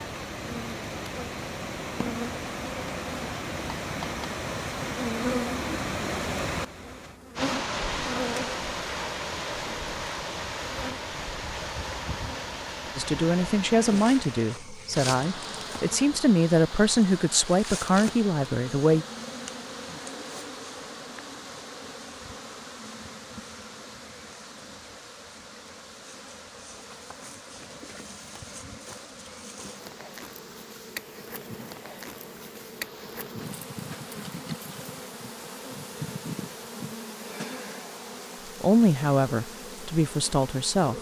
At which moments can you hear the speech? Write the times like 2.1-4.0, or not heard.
12.9-19.1, 38.6-40.9.